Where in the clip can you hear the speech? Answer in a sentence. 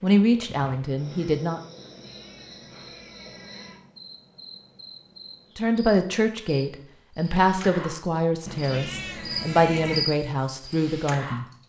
The speech can be heard from 0.0 to 1.6 s and from 5.5 to 11.4 s.